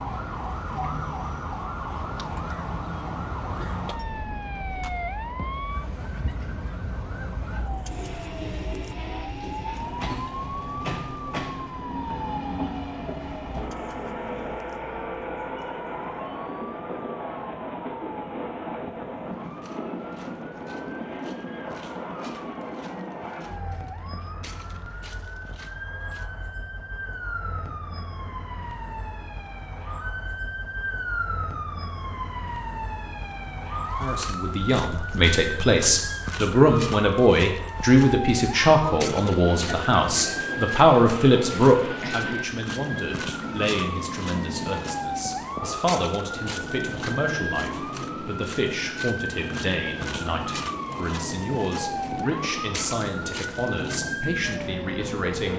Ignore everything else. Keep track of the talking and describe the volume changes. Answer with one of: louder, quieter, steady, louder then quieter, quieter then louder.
quieter.